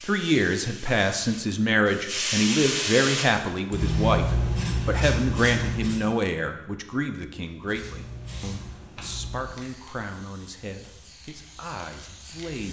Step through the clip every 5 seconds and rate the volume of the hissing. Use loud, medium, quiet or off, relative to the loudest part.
loud, medium, quiet.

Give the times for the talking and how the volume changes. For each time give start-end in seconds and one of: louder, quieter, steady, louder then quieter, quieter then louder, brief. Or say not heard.
0.0-12.6 quieter.